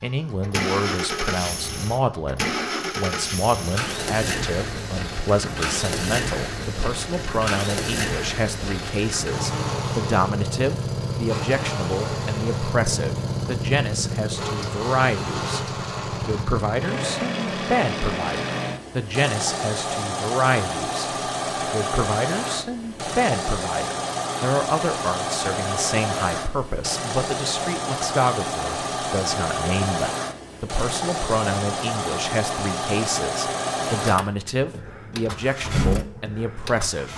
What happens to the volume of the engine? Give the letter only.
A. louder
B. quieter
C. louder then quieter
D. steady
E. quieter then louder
D.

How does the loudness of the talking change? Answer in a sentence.
The loudness of the talking stays about the same.